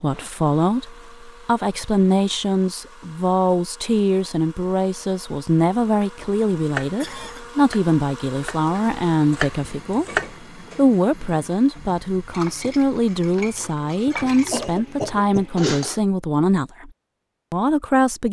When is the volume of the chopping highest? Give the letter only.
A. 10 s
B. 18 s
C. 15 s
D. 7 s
A.